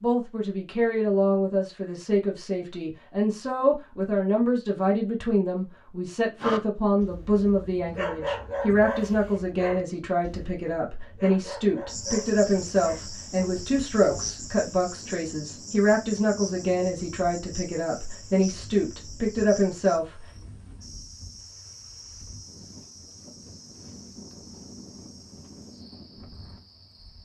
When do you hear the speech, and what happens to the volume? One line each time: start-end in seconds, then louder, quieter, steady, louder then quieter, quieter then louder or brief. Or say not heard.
0.0-20.2 steady.